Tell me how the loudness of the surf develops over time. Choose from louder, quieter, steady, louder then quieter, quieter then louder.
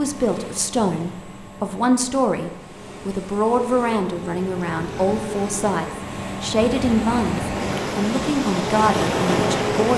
louder.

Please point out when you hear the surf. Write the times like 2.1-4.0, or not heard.
2.4-9.9.